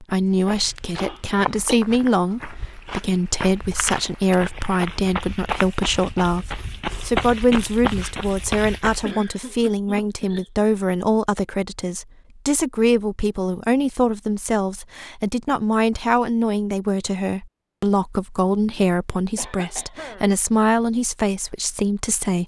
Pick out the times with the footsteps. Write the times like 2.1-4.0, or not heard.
0.2-9.2.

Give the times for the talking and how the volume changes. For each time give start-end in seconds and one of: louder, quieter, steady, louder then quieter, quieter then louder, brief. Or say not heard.
0.0-22.4 steady.